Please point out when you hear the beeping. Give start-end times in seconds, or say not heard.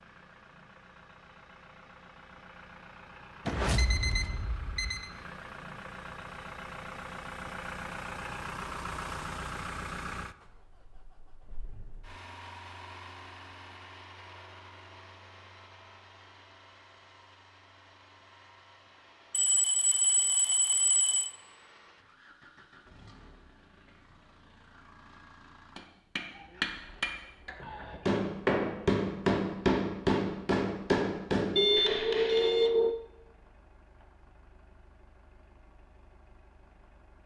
3.5-5.1, 19.3-21.4, 31.6-33.0.